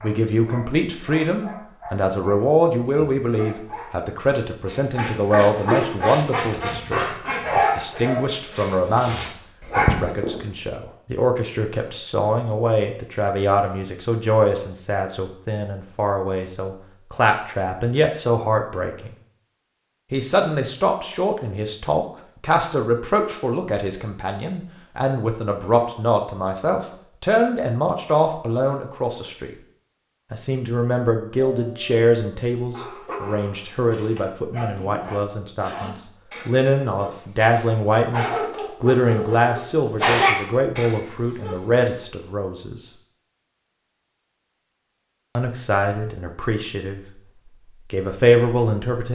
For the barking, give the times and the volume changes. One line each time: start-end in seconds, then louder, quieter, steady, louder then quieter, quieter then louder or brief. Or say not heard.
0.0-10.4 louder
31.5-41.6 louder.